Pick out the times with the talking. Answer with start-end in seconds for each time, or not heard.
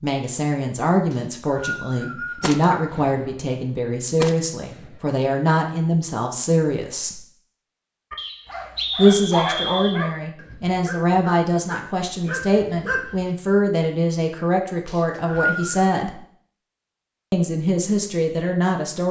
0.0-7.2, 8.9-16.2, 17.3-19.0.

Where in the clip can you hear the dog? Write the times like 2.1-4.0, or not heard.
8.1-13.2.